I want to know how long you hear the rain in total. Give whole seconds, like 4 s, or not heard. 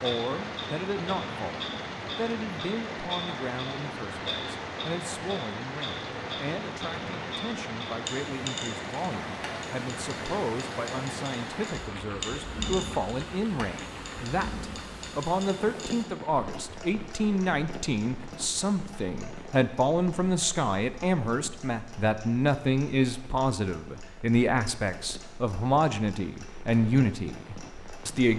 28 s.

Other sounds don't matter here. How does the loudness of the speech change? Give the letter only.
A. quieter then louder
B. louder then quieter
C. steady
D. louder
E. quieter
D.